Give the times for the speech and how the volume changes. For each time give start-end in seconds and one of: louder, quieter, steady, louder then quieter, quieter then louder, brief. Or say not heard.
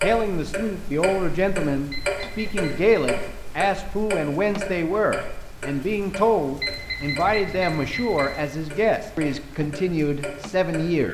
0.0-11.1 steady.